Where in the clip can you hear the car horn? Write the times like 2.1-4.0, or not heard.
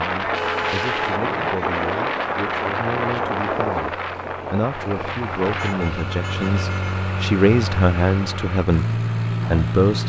0.3-1.6, 5.5-7.0.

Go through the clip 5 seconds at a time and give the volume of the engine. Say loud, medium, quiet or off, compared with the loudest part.
quiet, loud.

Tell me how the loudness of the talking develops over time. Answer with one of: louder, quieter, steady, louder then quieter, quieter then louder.
louder.